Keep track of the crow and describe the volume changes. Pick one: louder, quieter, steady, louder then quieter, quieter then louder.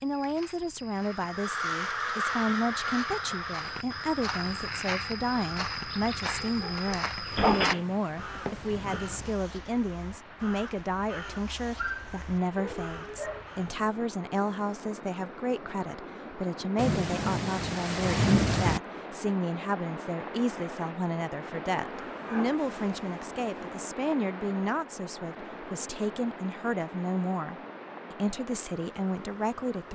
quieter.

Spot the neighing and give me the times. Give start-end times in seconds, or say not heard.
not heard.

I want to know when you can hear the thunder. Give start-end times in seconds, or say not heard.
7.3-9.3, 16.8-18.8.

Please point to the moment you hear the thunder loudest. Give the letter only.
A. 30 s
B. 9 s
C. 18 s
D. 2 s
C.